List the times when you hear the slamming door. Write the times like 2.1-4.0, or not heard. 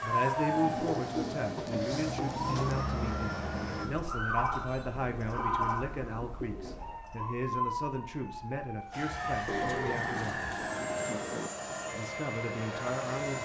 not heard.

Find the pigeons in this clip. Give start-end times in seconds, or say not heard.
0.5-2.9, 4.5-7.0, 9.4-11.5.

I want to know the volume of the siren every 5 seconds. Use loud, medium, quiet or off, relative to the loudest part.
loud, loud, medium.